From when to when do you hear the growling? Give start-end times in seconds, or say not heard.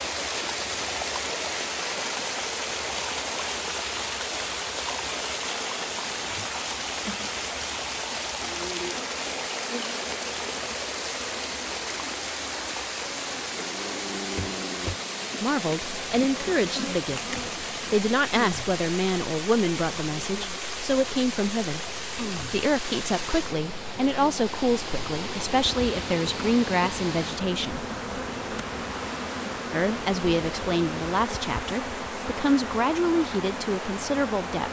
13.4-15.0.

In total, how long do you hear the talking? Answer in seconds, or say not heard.
17 s.